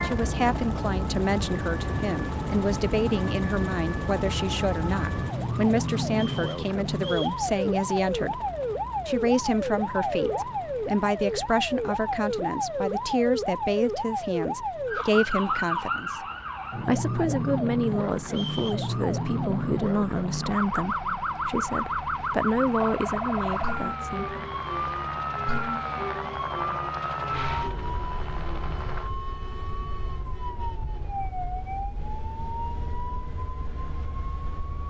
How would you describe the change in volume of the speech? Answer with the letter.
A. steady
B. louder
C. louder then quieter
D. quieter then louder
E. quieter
A.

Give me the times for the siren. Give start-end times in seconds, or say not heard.
0.0-34.8.